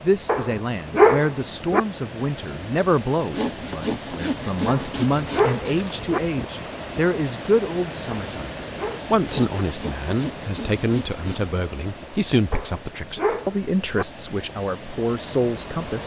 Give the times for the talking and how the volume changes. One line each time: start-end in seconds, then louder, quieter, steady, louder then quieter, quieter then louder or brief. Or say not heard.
0.0-16.0 steady.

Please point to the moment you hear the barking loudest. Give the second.
1 s.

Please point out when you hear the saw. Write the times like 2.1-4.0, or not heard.
3.3-6.0, 9.2-11.6.